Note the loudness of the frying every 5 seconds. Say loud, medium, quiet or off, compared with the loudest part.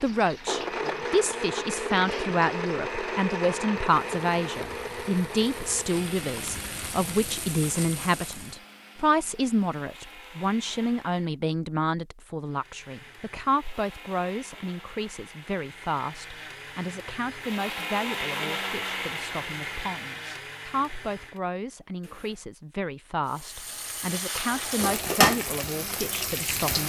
quiet, quiet, off, off, medium, loud.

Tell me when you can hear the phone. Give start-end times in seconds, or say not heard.
not heard.